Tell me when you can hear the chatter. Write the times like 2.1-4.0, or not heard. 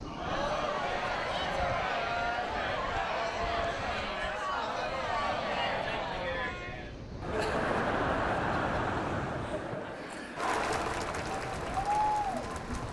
0.0-12.8.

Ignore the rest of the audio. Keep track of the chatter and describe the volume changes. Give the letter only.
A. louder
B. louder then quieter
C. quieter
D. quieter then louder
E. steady
E.